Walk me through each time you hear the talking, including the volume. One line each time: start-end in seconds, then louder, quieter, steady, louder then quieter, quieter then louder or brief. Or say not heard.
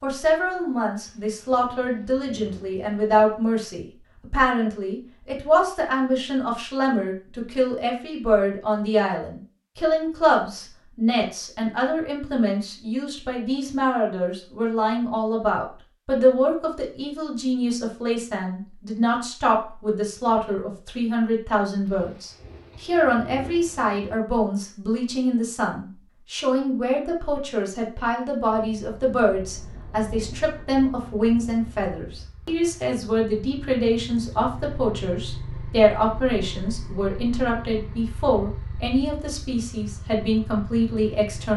0.0-41.5 steady.